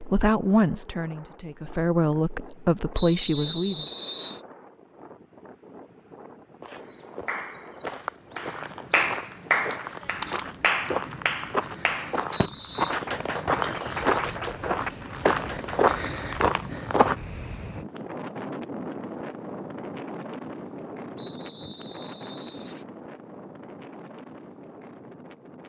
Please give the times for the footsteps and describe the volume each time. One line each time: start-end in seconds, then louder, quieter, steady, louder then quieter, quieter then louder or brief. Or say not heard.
6.6-17.1 louder.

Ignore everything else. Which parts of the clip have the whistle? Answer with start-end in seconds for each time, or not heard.
2.9-4.4, 12.3-12.9, 21.1-22.9.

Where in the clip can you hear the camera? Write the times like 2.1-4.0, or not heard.
9.7-10.9.